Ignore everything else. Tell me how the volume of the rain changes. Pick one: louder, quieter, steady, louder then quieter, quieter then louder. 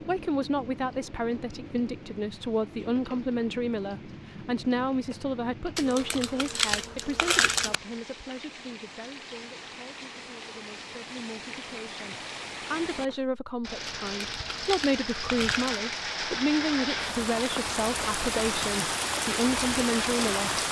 louder.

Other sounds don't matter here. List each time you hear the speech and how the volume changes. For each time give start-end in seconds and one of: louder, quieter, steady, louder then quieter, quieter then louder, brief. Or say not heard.
0.1-20.6 quieter then louder.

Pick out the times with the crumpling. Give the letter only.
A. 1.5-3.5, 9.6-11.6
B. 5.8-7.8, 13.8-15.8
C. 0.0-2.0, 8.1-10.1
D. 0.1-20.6
B.